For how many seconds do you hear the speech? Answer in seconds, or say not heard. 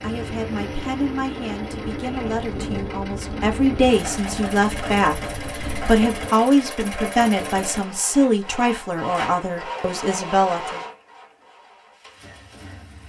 11 s.